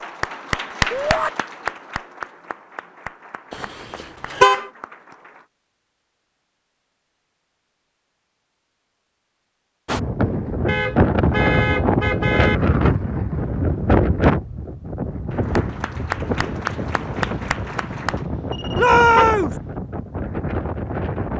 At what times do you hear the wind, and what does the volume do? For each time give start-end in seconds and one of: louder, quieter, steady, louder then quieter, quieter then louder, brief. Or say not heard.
9.8-21.3 quieter.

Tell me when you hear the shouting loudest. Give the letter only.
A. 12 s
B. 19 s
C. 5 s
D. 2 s
B.